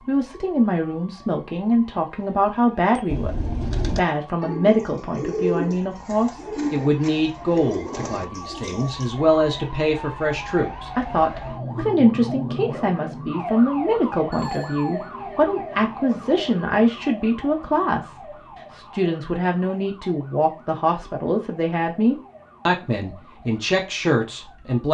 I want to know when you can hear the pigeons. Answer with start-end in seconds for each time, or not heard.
3.0-9.1.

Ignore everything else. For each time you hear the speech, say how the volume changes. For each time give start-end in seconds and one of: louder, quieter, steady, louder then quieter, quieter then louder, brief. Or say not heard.
0.1-24.8 steady.